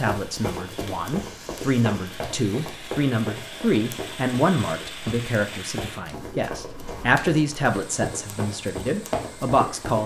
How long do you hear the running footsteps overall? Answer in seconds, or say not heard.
10 s.